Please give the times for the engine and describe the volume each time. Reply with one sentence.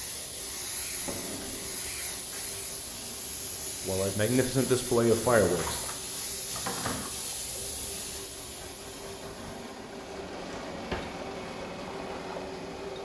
The engine can be heard from 0.0 to 12.9 s, getting louder.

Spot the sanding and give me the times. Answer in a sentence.
The sanding can't be heard in this clip.